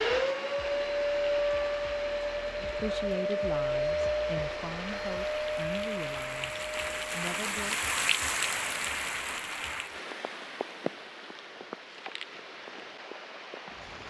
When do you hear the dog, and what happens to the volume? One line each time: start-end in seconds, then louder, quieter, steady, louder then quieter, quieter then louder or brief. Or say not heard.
not heard.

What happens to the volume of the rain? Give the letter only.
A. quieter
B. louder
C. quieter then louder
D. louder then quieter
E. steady
D.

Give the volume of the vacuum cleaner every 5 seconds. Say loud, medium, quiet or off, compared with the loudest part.
loud, medium, off.